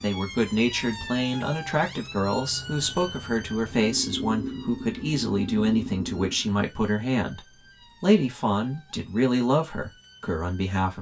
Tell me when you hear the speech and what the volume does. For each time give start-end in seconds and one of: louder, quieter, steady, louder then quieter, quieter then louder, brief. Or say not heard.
0.0-7.4 steady
8.0-10.9 brief.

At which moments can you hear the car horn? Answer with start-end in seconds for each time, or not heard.
not heard.